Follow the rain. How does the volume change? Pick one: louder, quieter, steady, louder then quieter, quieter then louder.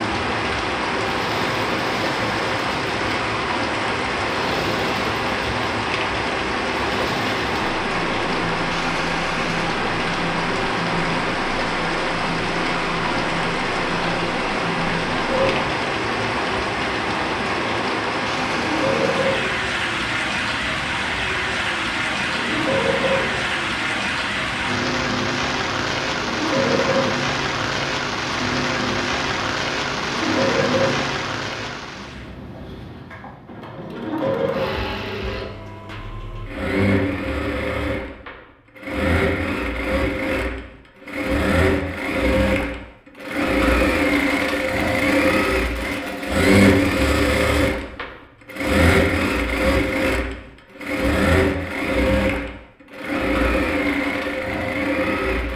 steady.